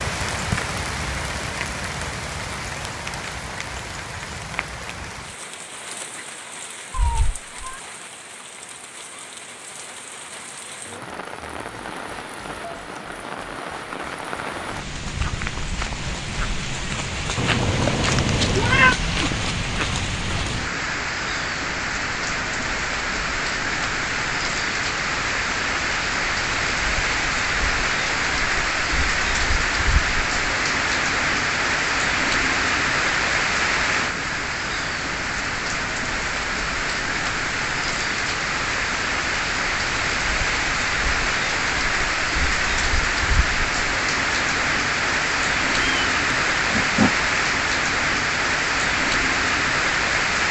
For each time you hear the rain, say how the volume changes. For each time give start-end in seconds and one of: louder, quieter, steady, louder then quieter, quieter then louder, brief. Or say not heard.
0.0-50.4 louder.